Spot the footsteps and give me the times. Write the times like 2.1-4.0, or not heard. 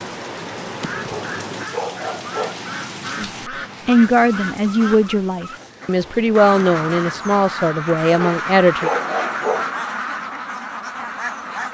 not heard.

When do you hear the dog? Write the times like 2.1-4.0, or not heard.
1.0-2.6, 8.1-9.8.